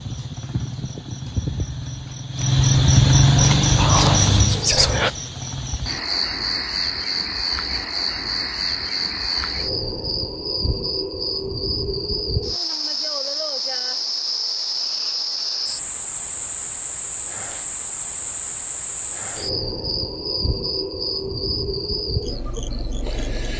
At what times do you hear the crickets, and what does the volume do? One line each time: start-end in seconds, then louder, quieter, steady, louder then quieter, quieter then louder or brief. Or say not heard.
0.0-23.5 quieter.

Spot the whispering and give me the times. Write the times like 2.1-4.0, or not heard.
3.6-5.1.